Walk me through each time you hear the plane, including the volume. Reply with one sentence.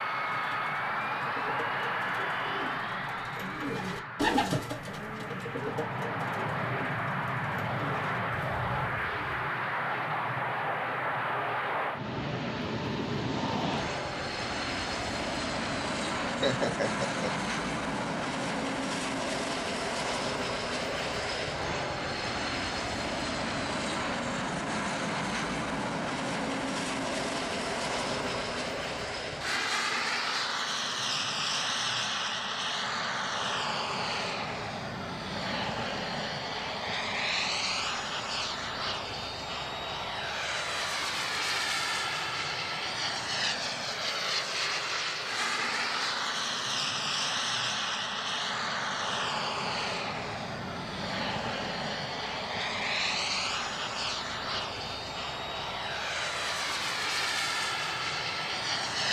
You can hear the plane from 0.0 to 59.0 s, at a steady volume.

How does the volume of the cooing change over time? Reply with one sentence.
The volume of the cooing goes up, then down.